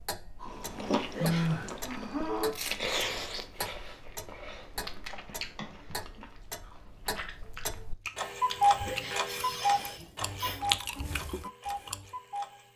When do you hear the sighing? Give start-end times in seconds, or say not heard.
0.4-2.5, 5.5-6.2, 8.8-10.6.